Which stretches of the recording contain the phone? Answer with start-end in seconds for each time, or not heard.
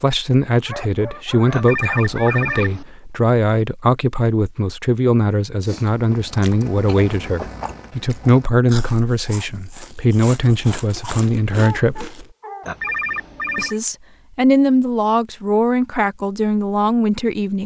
1.5-2.9, 12.7-13.8.